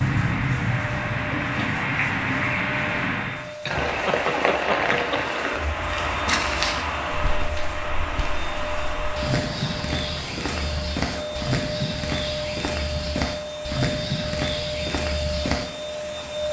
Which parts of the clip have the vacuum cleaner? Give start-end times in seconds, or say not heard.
0.0-16.4.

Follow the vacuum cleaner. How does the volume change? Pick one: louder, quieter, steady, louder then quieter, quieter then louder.
louder.